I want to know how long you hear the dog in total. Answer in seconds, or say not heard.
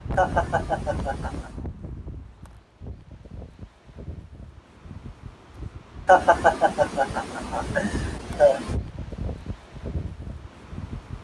not heard.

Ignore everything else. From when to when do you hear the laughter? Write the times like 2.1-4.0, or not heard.
0.1-1.6, 6.0-8.8.